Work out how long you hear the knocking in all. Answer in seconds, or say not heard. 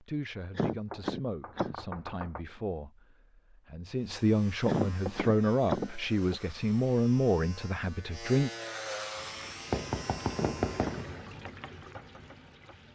5 s.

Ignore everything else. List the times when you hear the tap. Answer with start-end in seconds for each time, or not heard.
9.2-12.9.